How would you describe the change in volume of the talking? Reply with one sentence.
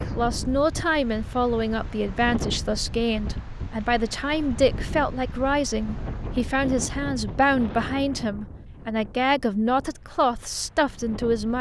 The volume of the talking stays about the same.